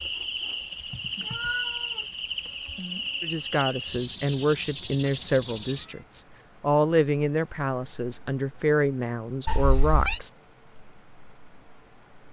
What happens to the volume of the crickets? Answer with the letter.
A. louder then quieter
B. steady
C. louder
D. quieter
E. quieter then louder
D.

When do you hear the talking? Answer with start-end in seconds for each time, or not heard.
3.2-10.3.